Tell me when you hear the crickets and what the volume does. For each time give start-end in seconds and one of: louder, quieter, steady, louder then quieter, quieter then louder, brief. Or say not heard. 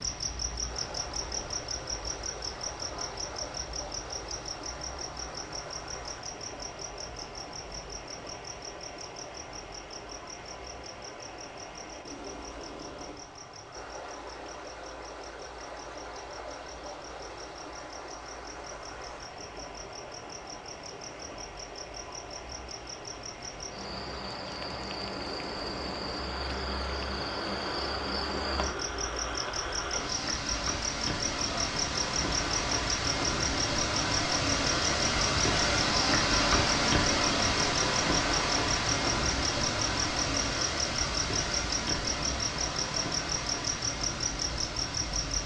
0.0-45.4 quieter then louder.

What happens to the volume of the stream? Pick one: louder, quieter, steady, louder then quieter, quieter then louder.
louder.